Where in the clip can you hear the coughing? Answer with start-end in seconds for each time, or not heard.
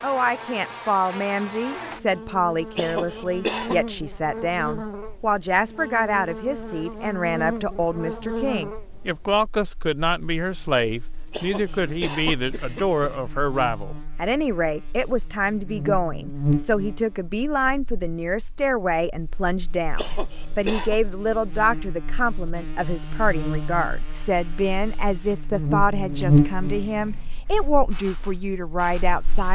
2.8-3.8, 11.3-13.2, 19.9-20.9.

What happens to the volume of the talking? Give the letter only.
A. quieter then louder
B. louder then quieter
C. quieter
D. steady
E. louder
D.